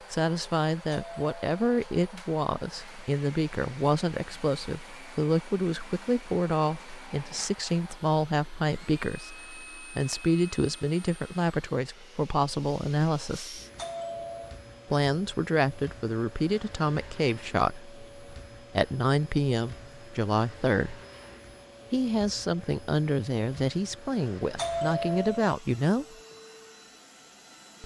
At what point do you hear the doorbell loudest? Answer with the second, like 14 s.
25 s.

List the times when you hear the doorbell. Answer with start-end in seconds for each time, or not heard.
0.9-1.9, 13.8-14.6, 24.6-25.6.